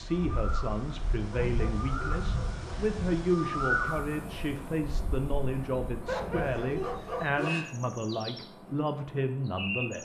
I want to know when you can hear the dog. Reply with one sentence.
The dog can be heard from 1.3 to 3.0 s and from 6.0 to 7.7 s.